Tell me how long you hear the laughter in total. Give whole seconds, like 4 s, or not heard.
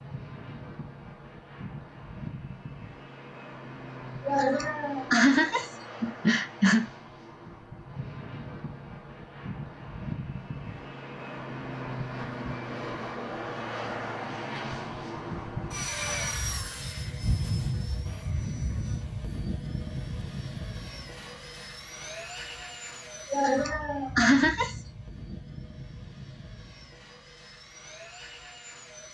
4 s.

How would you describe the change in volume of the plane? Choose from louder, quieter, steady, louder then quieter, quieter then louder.
louder then quieter.